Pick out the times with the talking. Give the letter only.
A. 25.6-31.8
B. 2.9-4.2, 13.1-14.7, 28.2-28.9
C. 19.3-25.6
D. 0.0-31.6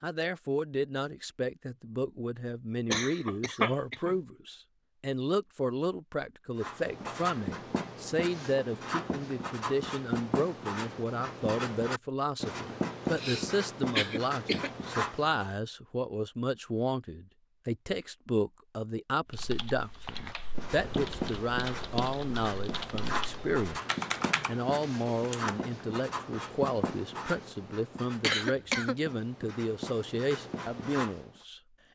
D.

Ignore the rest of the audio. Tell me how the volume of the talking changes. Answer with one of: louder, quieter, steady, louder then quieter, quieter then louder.
steady.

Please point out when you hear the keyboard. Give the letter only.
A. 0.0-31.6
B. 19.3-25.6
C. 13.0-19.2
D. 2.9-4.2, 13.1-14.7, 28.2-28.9
B.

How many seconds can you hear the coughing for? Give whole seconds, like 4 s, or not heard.
4 s.